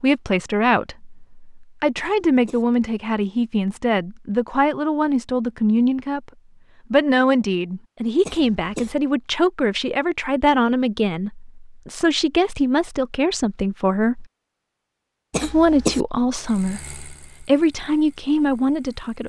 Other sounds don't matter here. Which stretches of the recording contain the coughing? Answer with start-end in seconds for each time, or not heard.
1.9-2.6, 8.2-8.9, 15.3-16.0.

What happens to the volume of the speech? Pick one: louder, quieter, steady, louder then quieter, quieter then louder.
steady.